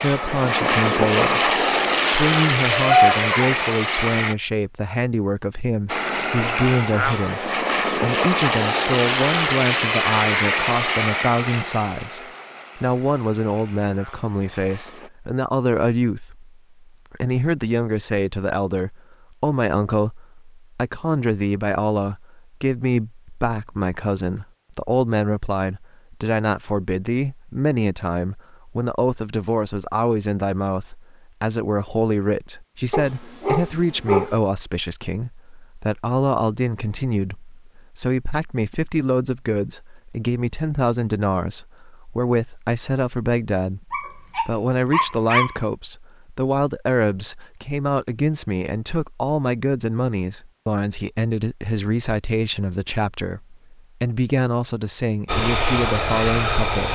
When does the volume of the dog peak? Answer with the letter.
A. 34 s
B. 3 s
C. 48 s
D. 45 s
B.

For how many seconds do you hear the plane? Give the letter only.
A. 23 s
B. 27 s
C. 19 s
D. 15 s
D.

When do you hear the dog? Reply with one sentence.
You can hear the dog from 2.7 to 3.4 s, from 32.9 to 34.4 s and from 43.9 to 45.5 s.